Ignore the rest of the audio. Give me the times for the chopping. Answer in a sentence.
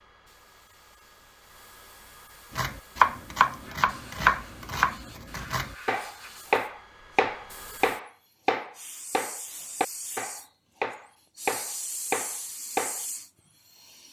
You can hear the chopping from 2.5 to 13.1 s.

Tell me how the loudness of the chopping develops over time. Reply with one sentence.
The volume of the chopping goes down.